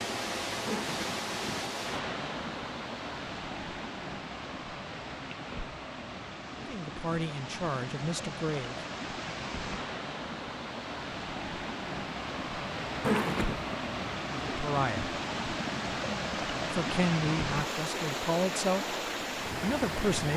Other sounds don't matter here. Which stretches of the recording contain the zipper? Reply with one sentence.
The zipper can be heard from 0.7 to 1.7 s and from 13.0 to 13.8 s.